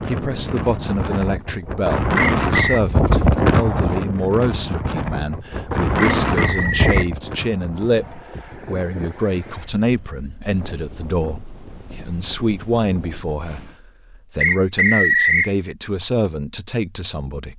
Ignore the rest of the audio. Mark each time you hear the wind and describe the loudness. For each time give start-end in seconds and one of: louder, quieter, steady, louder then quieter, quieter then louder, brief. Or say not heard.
0.0-13.8 quieter.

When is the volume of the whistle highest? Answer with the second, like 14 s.
15 s.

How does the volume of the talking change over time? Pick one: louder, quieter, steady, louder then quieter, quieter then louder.
steady.